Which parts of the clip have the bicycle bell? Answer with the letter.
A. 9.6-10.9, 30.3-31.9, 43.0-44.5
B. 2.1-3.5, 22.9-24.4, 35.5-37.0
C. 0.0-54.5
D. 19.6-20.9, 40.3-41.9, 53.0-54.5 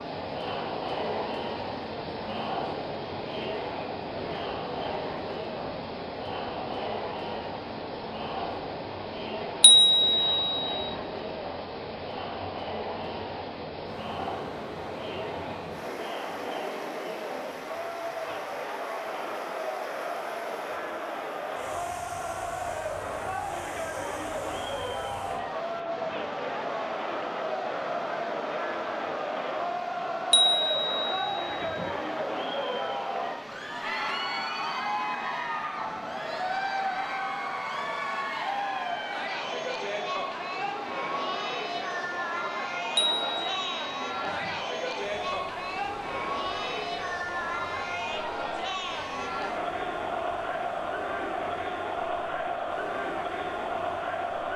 A.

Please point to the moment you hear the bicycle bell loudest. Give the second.
10 s.